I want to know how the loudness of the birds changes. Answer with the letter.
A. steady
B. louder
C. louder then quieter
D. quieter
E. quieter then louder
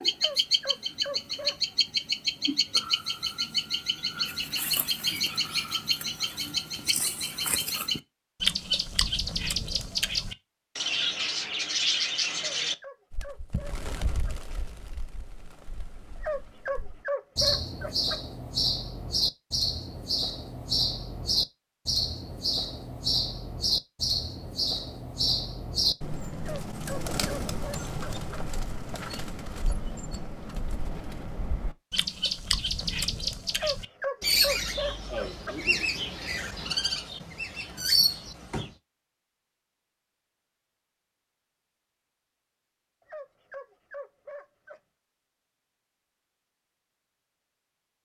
A.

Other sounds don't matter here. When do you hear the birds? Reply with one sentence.
The birds can be heard from 0.0 to 38.8 s.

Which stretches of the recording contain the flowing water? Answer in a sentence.
You can't hear the flowing water here.